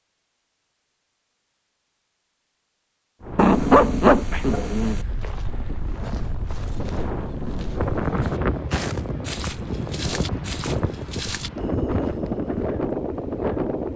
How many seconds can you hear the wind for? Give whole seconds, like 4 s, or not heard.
11 s.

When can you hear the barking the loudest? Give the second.
4 s.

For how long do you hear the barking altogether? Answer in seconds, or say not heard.
2 s.